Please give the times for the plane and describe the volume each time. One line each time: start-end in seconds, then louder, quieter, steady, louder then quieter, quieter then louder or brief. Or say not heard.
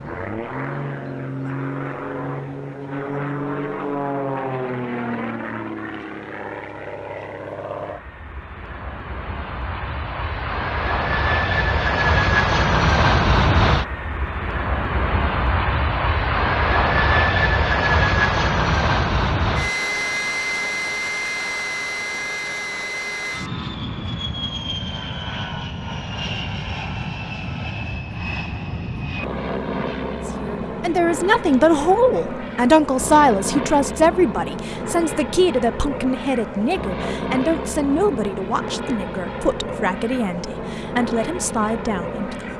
0.0-42.5 louder then quieter.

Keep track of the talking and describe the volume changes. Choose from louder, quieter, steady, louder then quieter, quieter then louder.
quieter.